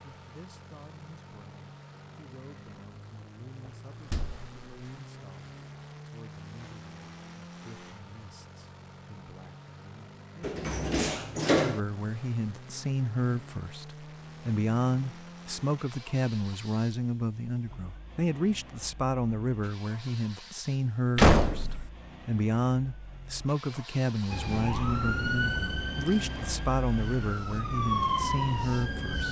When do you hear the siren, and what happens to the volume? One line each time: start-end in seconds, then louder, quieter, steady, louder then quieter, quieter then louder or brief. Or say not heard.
24.3-29.2 quieter then louder.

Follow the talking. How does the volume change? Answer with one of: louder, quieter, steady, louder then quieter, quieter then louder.
louder.